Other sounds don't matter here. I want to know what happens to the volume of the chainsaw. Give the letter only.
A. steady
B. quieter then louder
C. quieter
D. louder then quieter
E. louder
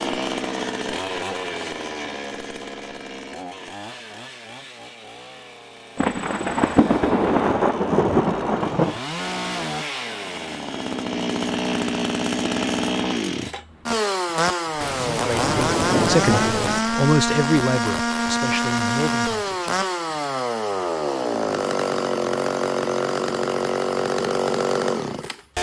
E.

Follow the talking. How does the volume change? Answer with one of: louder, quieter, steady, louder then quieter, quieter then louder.
louder then quieter.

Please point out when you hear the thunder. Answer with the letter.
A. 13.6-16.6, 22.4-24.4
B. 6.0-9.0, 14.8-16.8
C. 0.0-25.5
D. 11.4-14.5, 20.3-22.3
B.